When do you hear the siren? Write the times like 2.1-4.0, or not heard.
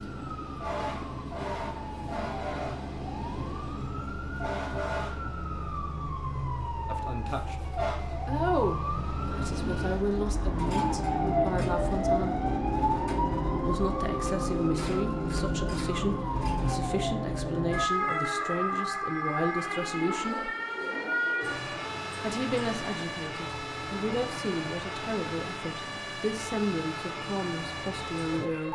0.0-28.7.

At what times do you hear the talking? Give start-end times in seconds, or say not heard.
6.8-7.5, 8.2-12.4, 13.6-20.5, 22.2-28.7.